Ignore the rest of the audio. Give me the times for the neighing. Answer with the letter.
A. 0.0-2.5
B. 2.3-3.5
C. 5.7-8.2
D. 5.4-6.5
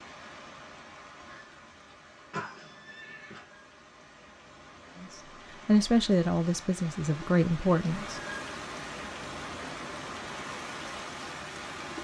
B.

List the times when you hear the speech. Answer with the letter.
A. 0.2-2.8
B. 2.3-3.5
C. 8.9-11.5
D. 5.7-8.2
D.